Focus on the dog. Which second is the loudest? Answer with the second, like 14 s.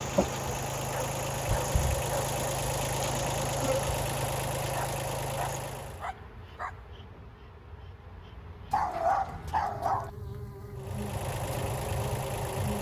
9 s.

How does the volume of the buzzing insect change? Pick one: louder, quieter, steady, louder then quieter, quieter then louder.
quieter then louder.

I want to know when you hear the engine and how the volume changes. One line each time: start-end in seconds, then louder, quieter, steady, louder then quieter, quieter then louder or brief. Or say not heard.
0.0-6.0 steady
10.8-12.7 brief.